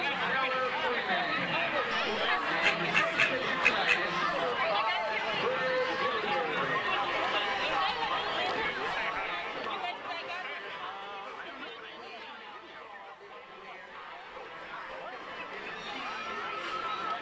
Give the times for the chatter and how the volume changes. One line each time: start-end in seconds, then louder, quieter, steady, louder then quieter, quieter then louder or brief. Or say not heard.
0.0-17.1 quieter.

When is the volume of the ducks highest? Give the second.
4 s.